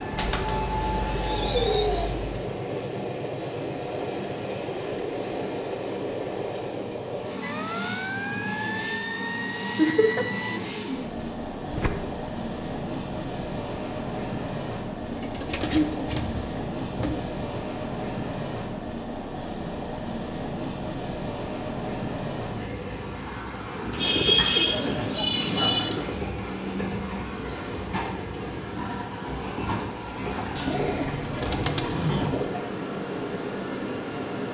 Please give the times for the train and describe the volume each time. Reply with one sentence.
The train can be heard from 0.0 to 34.4 s, at a steady volume.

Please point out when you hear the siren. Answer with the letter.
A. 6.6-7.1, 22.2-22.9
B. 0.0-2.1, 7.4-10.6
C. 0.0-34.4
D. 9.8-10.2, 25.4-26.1
B.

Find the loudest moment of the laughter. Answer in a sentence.
The volume of the laughter peaks at 10 seconds.